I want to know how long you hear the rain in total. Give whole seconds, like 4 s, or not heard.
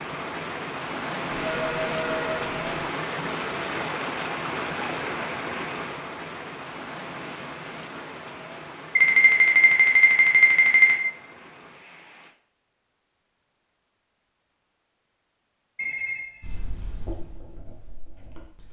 12 s.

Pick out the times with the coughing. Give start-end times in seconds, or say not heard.
not heard.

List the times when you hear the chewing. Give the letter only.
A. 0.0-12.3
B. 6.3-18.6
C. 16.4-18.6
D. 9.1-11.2
C.